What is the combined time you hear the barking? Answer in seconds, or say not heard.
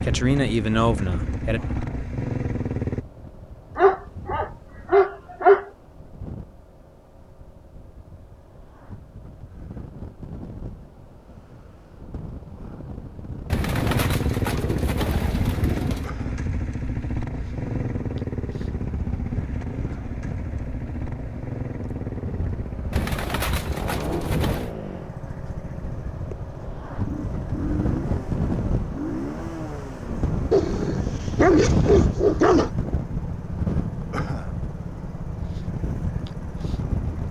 4 s.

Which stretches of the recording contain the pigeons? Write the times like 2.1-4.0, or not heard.
13.4-16.1, 22.9-24.7.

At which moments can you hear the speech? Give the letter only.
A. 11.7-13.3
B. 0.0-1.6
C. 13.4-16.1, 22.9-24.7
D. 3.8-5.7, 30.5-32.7
B.